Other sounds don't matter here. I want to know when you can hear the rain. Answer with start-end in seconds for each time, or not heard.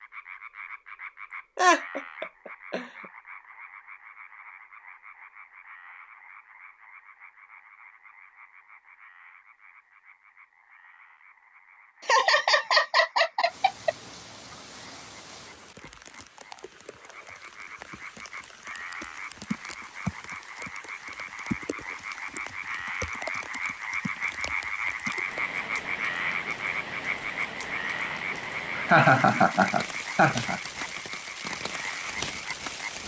13.4-33.0.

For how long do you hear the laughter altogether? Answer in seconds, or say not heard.
5 s.